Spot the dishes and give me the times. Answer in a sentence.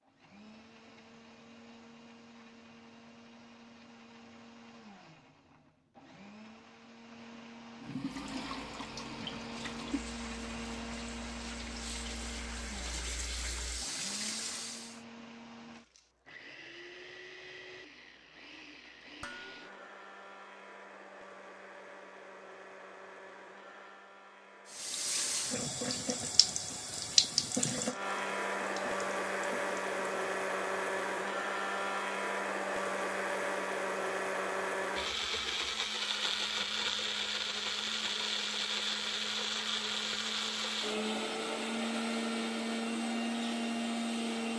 You can hear the dishes from 19.2 to 19.9 s.